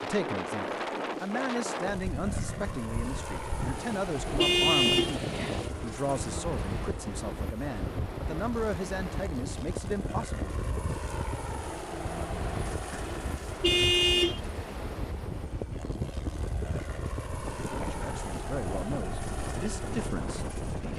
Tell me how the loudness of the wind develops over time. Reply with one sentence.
The loudness of the wind stays about the same.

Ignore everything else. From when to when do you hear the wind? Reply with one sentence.
You can hear the wind from 0.0 to 20.9 s.